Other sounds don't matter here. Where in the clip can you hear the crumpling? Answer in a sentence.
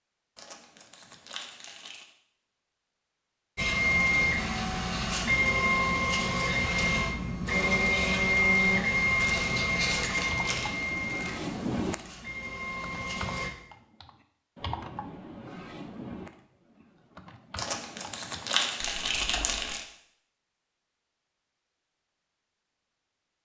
The crumpling can be heard from 0.3 to 2.1 s, from 9.2 to 11.3 s and from 17.6 to 19.9 s.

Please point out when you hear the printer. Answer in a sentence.
You can hear the printer from 3.5 to 13.5 s.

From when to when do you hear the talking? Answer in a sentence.
You can't hear the talking here.